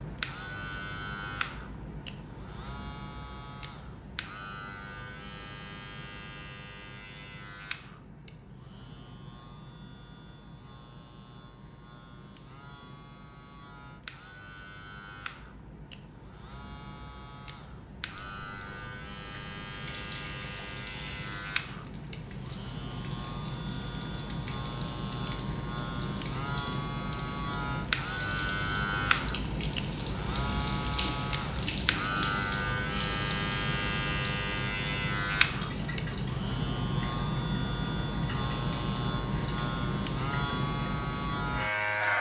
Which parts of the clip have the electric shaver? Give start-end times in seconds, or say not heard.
0.0-42.1.